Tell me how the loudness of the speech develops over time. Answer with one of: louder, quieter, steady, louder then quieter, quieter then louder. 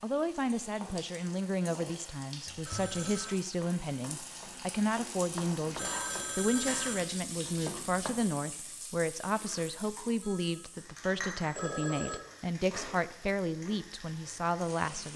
steady.